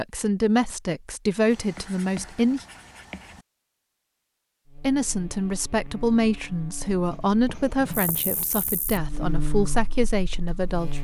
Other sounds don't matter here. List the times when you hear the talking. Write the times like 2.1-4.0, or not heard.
0.0-2.6, 4.8-10.9.